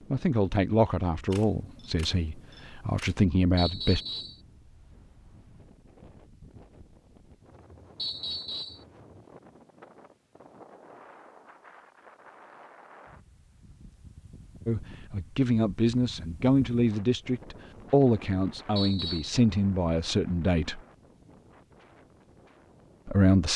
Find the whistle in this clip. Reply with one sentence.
You can hear the whistle from 3.5 to 4.4 s, from 8.0 to 8.8 s and from 18.8 to 19.4 s.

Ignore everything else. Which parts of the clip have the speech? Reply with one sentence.
The speech can be heard from 0.1 to 4.0 s, from 14.7 to 20.8 s and from 23.1 to 23.5 s.